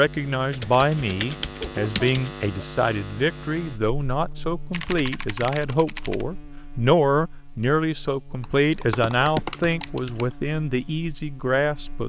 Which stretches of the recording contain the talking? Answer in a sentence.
The talking can be heard from 0.0 to 12.0 s.